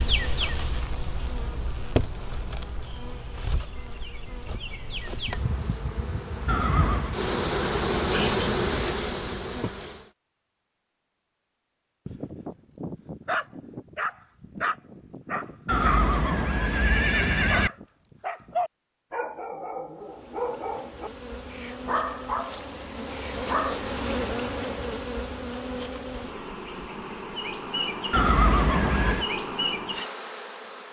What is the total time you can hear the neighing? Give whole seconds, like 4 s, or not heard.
4 s.